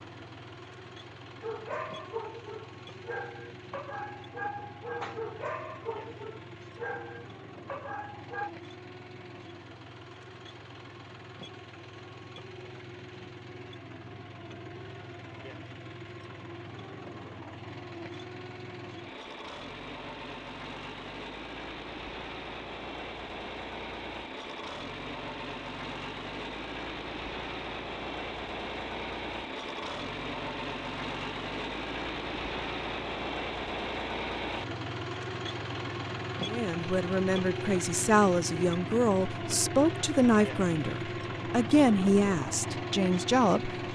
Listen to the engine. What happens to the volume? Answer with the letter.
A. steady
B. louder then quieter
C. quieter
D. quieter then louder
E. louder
E.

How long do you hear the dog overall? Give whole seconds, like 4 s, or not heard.
7 s.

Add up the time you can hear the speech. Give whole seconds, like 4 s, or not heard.
7 s.